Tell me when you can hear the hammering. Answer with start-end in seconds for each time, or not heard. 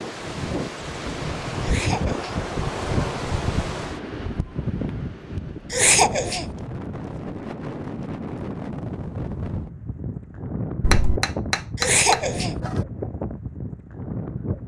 10.8-12.8.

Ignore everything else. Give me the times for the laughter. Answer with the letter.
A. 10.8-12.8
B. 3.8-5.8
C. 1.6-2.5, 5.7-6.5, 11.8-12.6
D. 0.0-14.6
C.